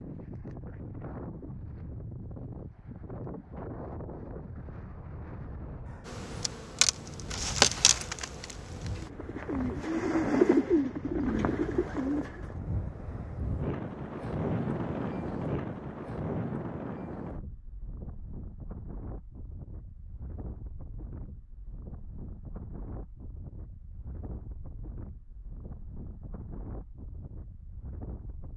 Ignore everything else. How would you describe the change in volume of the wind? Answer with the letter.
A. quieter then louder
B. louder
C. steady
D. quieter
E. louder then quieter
E.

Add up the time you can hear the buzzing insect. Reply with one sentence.
The buzzing insect can be heard for 3 seconds in total.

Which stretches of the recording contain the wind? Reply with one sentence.
The wind can be heard from 0.0 to 28.5 s.